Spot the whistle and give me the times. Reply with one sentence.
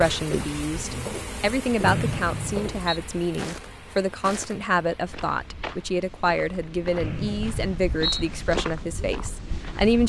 The whistle can be heard from 1.8 to 3.0 s and from 7.0 to 8.2 s.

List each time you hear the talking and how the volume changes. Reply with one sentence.
The talking can be heard from 0.0 to 10.0 s, at a steady volume.